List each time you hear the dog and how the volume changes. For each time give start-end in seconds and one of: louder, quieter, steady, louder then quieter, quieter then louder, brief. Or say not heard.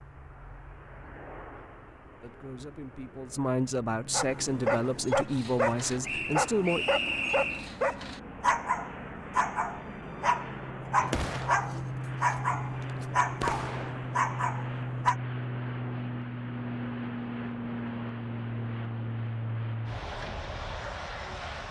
4.1-15.2 steady.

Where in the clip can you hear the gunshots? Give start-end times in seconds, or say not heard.
11.0-14.0.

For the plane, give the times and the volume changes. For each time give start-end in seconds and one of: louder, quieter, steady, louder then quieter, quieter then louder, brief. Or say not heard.
0.0-21.6 louder.